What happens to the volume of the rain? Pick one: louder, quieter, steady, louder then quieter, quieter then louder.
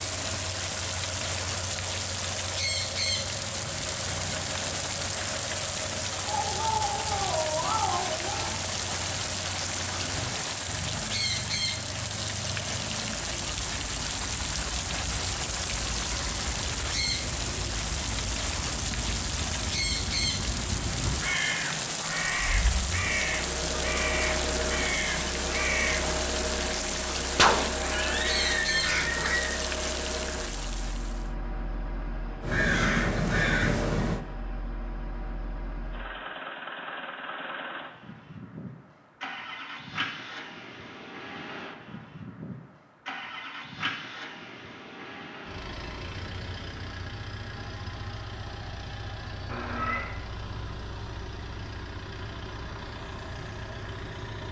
steady.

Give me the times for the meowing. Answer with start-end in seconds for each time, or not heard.
6.2-8.5, 27.8-29.6, 49.5-50.1.